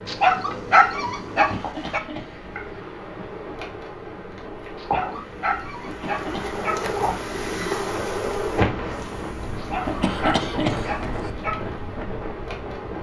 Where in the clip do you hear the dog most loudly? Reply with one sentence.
The loudest moment of the dog is at 1 second.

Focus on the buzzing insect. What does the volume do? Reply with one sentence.
The volume of the buzzing insect goes up, then down.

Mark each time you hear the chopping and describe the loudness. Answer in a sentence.
The chopping can't be heard in this clip.